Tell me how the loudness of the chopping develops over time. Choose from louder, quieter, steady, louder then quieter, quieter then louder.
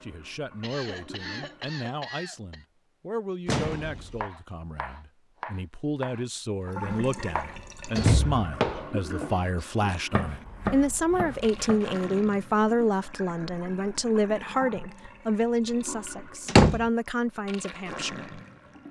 louder then quieter.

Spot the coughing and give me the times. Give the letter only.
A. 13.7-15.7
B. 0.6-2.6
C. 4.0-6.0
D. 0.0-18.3
B.